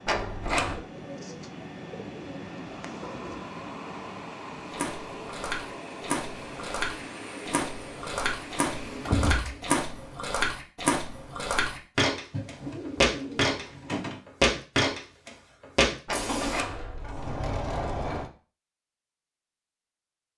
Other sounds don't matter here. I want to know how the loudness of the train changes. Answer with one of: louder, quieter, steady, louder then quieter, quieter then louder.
steady.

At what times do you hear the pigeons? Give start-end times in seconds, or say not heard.
0.8-3.4, 12.3-14.2.